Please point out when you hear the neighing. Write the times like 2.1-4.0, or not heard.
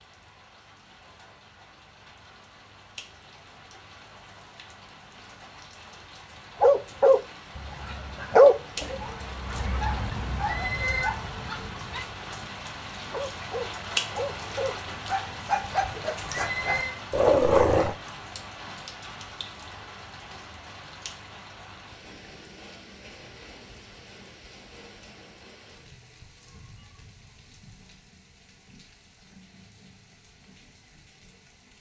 10.4-11.1, 16.3-17.0.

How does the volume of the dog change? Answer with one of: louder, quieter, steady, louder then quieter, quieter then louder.
quieter then louder.